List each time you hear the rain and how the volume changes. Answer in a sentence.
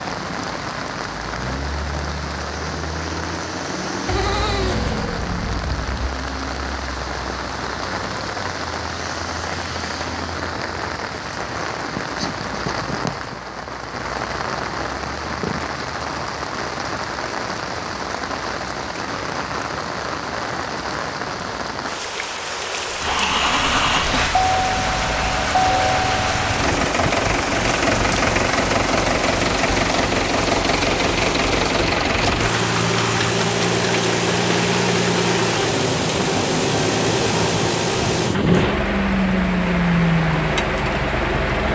You can hear the rain from 0.0 to 41.7 s, at a steady volume.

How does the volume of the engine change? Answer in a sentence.
The loudness of the engine stays about the same.